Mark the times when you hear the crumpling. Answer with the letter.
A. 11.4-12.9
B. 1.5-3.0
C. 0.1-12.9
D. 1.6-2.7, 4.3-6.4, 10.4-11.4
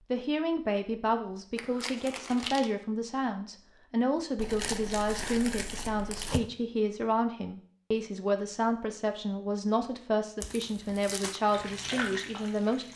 D.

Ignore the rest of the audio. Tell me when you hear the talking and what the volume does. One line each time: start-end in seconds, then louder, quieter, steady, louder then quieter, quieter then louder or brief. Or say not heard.
0.1-12.9 steady.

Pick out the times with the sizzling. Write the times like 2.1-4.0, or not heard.
11.4-12.9.